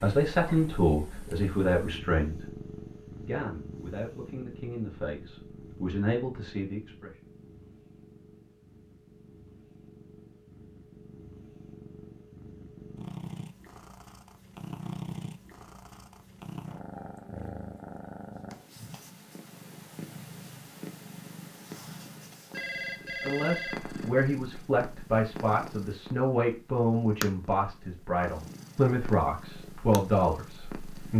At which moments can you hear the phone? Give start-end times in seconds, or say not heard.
22.5-24.2.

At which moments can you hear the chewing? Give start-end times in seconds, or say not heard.
not heard.